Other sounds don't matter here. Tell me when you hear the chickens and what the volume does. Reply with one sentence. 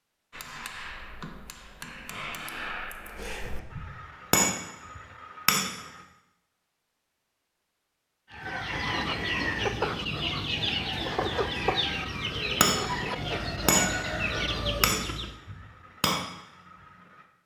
The chickens can be heard from 8.3 to 15.3 s, at a steady volume.